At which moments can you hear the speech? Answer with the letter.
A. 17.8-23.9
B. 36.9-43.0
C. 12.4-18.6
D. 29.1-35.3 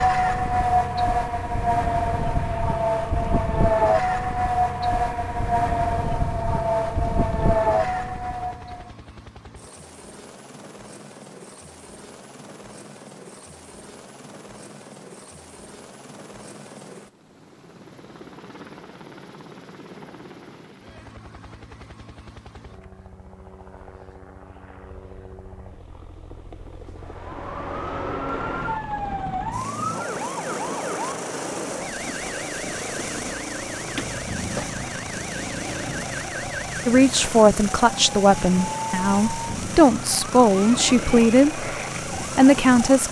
B.